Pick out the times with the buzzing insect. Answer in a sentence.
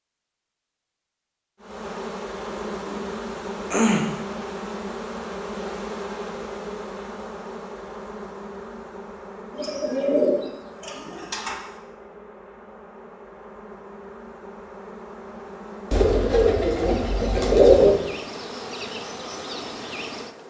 The buzzing insect can be heard from 1.6 to 20.4 s.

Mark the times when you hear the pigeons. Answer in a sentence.
The pigeons can be heard from 2.5 to 4.0 s, from 9.5 to 11.6 s and from 15.9 to 17.9 s.